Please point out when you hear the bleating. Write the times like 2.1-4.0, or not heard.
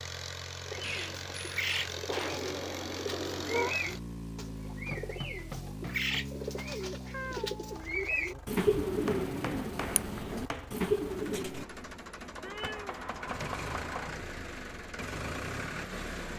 not heard.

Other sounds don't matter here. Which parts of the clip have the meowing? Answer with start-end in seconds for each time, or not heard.
2.0-3.8, 7.1-8.4, 12.4-13.6.